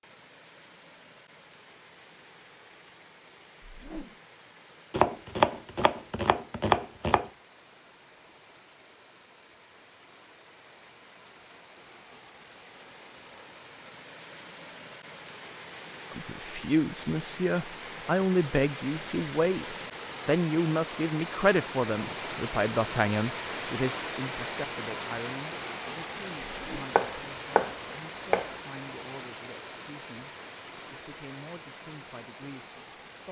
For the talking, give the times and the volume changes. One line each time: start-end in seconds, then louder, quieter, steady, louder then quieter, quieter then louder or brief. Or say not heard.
16.1-33.2 quieter.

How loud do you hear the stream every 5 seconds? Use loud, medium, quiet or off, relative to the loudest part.
quiet, quiet, quiet, medium, loud, loud, medium.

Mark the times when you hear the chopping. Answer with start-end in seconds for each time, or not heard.
4.9-7.3, 26.9-28.6.